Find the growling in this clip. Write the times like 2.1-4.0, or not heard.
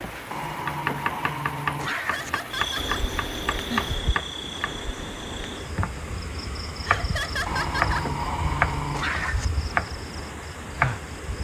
0.3-2.3, 7.5-9.4.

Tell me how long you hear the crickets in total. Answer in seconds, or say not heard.
9 s.